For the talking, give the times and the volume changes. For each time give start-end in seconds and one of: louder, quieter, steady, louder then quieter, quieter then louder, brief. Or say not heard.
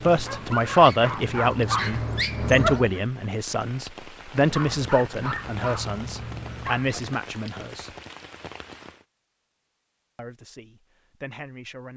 0.1-7.9 quieter
10.2-11.9 brief.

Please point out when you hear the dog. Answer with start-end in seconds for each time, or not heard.
0.0-3.0, 4.4-7.0.